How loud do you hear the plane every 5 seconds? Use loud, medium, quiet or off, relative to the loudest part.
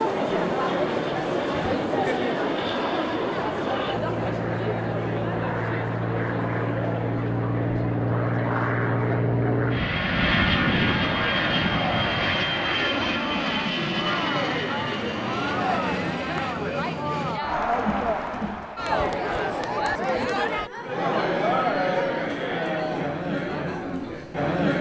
medium, loud, loud, medium, off.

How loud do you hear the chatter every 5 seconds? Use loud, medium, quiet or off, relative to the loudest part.
loud, medium, medium, loud, loud.